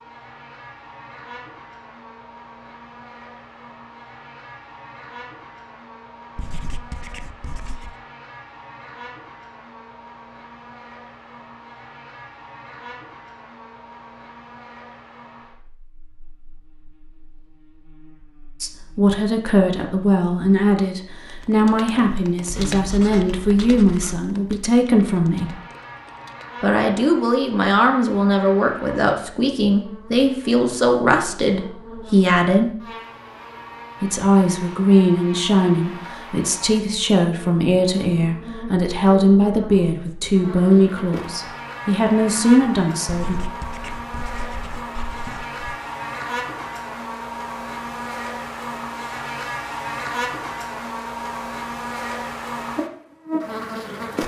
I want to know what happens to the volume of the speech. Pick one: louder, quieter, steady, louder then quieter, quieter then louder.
steady.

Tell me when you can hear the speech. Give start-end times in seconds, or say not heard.
18.6-25.6, 26.6-32.7, 34.0-43.4.